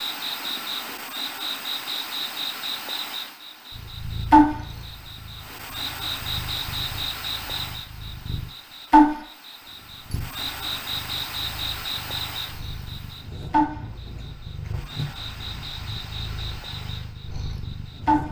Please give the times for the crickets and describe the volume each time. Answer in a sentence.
The crickets can be heard from 0.0 to 18.2 s, getting louder then quieter.